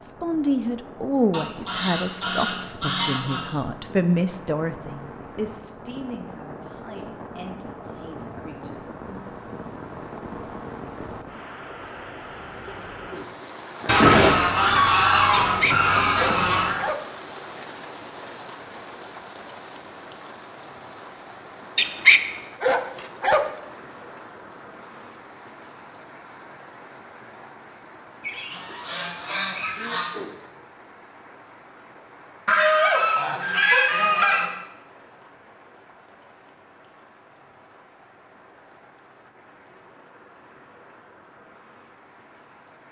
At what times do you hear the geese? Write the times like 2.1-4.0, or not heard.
1.3-3.5, 13.8-16.8, 28.2-30.1, 32.5-34.5.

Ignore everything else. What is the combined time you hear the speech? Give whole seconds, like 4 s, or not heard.
9 s.